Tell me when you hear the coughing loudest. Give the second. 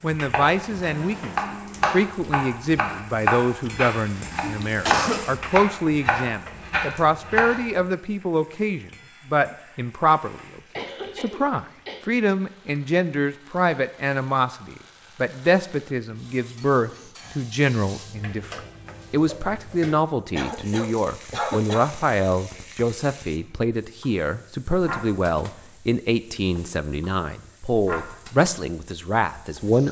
5 s.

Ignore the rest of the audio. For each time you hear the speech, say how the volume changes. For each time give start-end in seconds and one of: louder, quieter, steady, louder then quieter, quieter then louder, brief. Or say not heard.
0.0-29.8 steady.